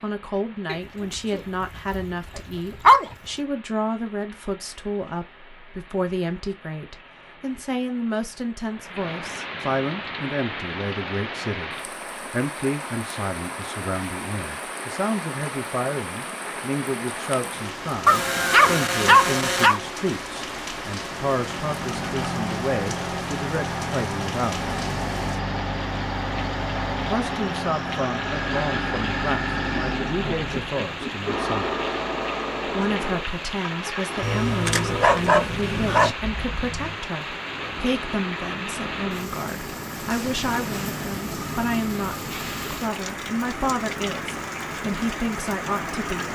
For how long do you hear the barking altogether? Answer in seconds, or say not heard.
6 s.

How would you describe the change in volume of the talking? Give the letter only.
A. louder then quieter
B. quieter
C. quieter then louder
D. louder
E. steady
E.